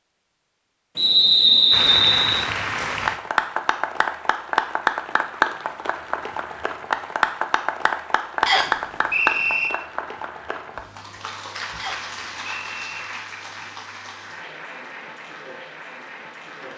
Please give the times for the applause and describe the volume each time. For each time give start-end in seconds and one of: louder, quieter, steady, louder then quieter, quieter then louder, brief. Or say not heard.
1.7-16.7 quieter.